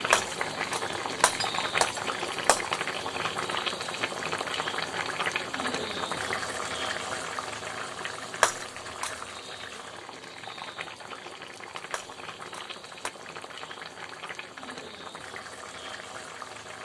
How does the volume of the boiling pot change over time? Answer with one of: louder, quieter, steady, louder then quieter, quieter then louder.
quieter.